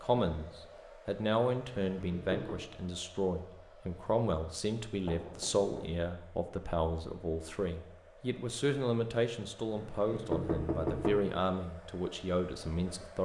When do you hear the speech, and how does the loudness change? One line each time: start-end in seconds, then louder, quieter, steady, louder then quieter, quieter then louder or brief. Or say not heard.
0.0-13.2 steady.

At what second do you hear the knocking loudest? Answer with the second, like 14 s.
11 s.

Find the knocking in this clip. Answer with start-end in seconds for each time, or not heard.
1.9-2.5, 5.0-6.0, 9.7-11.2.